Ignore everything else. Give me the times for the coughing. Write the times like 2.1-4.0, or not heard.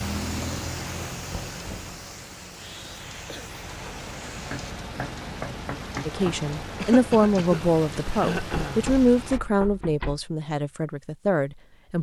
2.5-3.5, 6.8-8.8.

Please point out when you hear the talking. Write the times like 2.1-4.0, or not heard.
6.0-11.9.